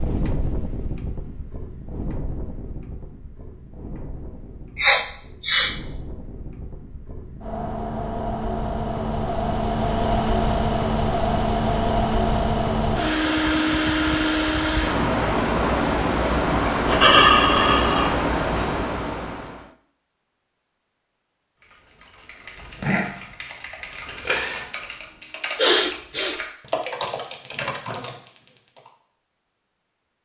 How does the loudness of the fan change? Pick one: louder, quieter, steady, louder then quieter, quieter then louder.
louder.